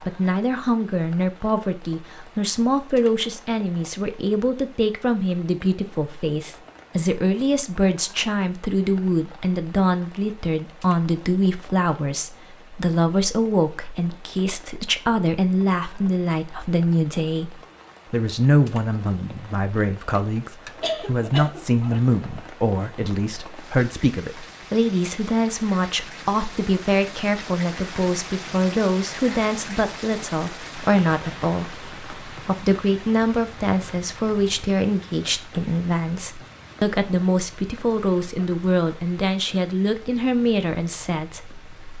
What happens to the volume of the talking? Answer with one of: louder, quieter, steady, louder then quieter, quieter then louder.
steady.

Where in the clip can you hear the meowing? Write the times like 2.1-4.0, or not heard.
not heard.